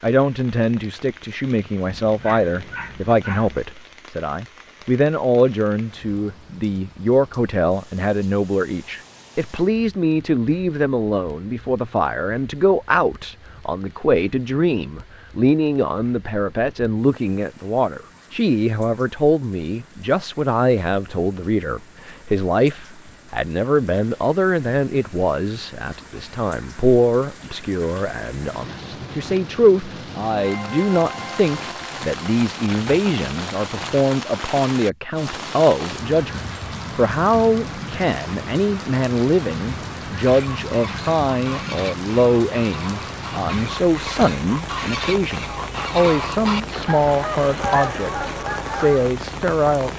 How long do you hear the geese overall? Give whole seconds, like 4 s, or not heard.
9 s.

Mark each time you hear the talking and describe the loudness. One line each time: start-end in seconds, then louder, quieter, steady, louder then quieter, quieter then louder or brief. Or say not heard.
0.0-49.9 steady.